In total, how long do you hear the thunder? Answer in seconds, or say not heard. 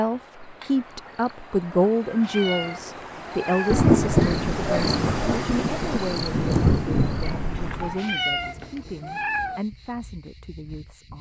4 s.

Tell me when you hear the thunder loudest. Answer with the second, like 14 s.
4 s.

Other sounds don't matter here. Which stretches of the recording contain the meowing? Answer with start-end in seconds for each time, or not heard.
2.2-3.9, 8.0-9.6.